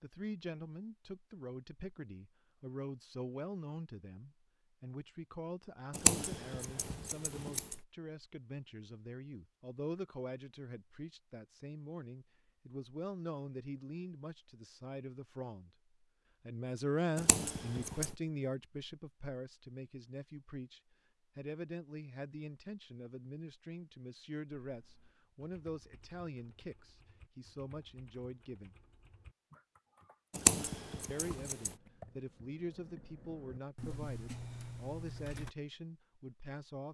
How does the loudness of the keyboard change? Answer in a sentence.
The volume of the keyboard goes up.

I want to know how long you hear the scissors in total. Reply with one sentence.
The scissors can be heard for 4 seconds in total.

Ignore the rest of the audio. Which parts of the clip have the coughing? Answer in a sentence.
You can't hear the coughing here.